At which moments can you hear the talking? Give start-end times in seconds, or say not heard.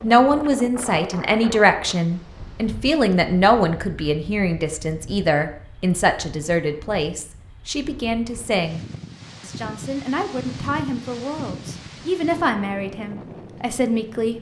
0.0-14.3.